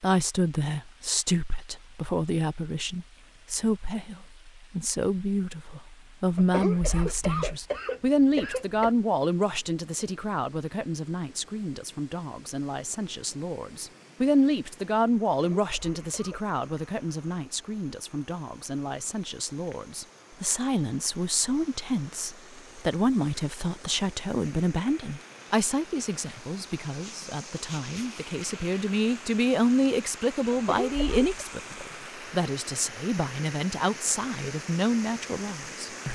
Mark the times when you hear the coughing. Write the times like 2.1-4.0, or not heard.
6.3-8.9, 15.3-16.4, 30.5-31.4.